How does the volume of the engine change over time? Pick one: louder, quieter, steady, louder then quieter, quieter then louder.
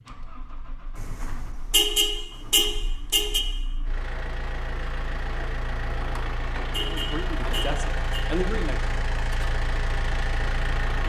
louder.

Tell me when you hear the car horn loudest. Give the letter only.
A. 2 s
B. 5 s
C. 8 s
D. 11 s
A.